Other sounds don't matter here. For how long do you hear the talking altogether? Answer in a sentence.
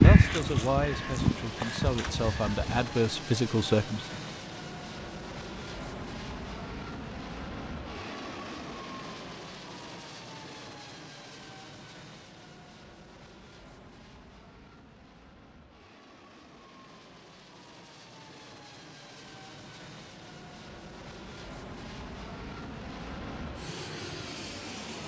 You can hear the talking for 4 seconds altogether.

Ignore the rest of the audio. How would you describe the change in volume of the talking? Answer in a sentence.
The loudness of the talking goes down, then up.